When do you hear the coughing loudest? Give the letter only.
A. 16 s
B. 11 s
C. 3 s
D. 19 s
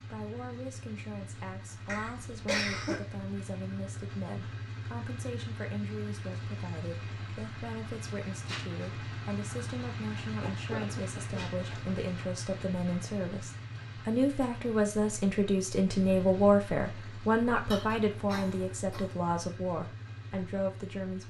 C.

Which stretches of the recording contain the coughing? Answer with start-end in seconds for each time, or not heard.
1.9-3.0, 10.4-11.9, 17.7-19.1.